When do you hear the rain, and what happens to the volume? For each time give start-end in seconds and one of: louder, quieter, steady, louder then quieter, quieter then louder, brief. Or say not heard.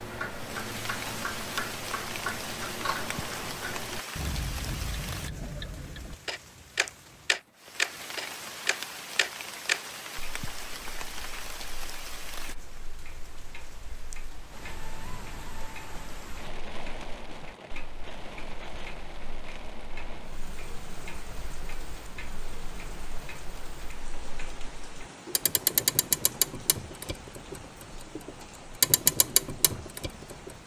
0.2-30.6 quieter.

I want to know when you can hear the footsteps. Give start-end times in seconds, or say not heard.
not heard.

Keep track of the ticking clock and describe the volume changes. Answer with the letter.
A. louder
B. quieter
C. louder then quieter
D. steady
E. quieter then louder
E.